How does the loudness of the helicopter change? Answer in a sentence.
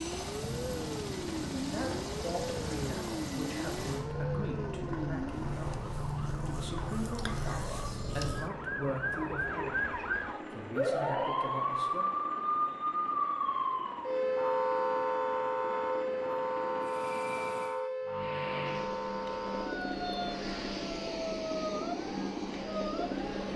The volume of the helicopter goes down, then up.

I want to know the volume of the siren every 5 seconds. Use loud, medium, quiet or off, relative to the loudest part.
medium, medium, loud, loud, medium.